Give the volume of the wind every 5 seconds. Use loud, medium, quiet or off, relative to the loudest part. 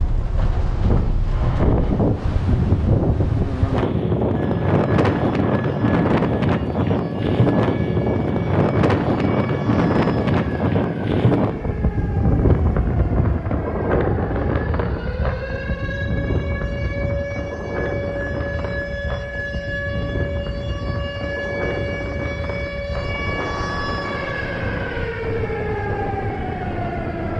loud, loud, loud, medium, medium, medium.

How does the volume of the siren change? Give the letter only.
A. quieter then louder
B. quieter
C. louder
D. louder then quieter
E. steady
C.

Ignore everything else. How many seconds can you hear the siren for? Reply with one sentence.
The siren can be heard for 23 seconds in total.